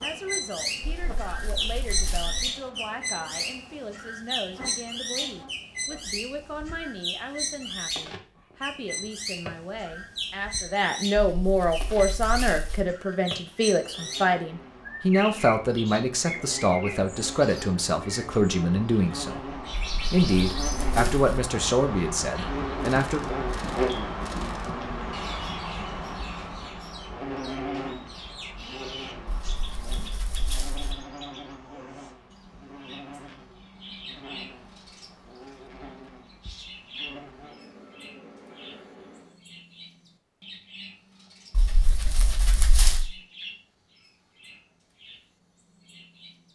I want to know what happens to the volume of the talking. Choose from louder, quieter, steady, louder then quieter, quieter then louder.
louder.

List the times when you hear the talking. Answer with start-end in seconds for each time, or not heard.
0.0-23.2.